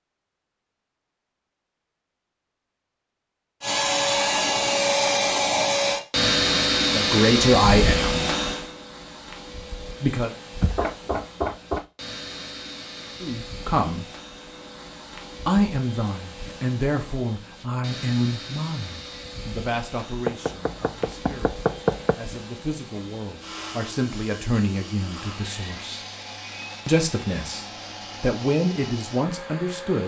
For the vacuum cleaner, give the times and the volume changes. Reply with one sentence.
The vacuum cleaner can be heard from 3.6 to 30.0 s, getting quieter.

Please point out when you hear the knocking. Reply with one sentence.
You can hear the knocking from 10.6 to 11.8 s and from 20.2 to 22.1 s.